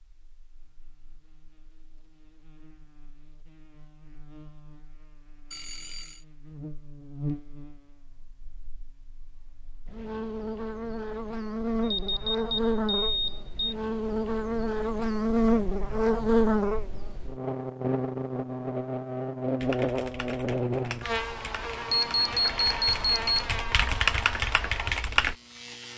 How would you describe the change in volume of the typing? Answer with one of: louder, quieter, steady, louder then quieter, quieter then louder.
louder.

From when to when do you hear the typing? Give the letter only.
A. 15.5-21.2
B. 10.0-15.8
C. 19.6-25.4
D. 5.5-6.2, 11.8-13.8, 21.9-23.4
C.